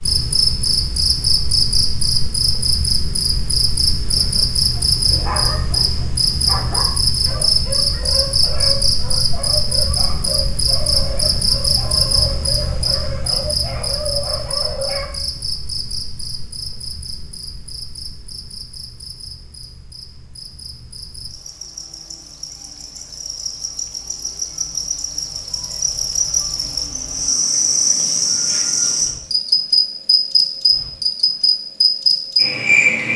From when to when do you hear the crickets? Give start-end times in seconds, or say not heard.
0.0-33.1.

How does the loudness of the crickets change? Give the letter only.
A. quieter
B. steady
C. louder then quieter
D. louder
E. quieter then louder
E.